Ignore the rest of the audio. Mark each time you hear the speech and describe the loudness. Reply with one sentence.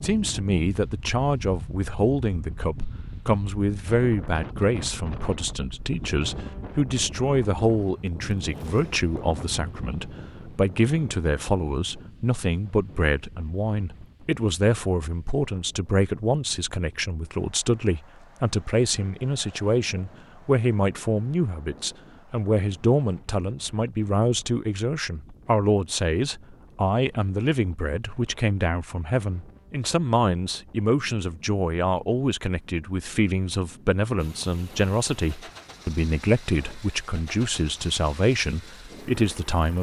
You can hear the speech from 0.0 to 39.7 s, at a steady volume.